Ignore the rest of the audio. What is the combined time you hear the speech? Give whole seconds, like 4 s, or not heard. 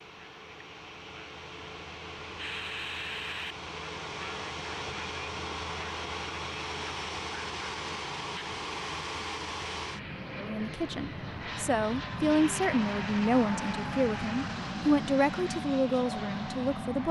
7 s.